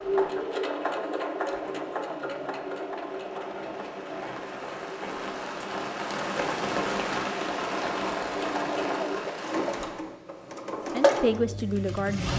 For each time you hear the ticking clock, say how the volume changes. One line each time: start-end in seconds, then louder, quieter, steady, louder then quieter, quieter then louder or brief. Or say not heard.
not heard.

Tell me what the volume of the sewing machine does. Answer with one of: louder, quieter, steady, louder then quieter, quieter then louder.
quieter then louder.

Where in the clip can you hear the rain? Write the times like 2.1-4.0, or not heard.
0.0-10.1.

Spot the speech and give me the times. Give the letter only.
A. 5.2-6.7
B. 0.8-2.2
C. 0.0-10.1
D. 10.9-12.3
D.